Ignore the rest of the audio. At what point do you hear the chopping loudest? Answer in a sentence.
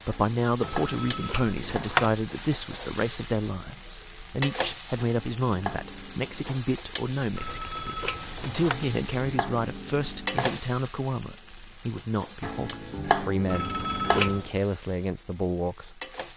The volume of the chopping peaks at 13 seconds.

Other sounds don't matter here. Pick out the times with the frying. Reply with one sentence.
The frying can be heard from 0.0 to 16.3 s.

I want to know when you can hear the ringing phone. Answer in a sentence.
The ringing phone can be heard from 0.6 to 2.1 s, from 7.3 to 8.8 s and from 13.4 to 14.5 s.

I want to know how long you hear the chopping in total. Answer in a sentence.
The chopping can be heard for 7 seconds in total.